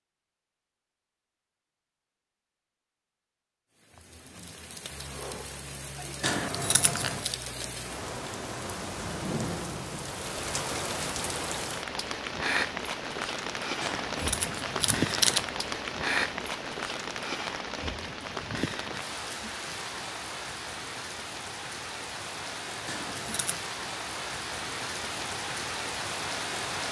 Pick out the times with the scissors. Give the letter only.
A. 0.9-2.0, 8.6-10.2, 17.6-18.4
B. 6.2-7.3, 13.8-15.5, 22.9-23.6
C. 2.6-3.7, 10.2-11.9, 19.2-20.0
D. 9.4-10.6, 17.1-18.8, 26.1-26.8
B.